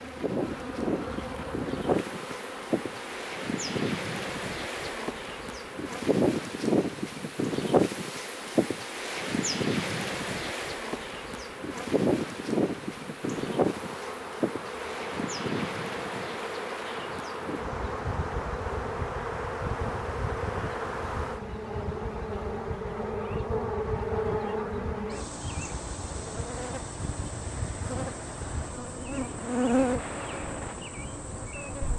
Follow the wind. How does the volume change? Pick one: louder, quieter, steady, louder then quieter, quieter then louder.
quieter.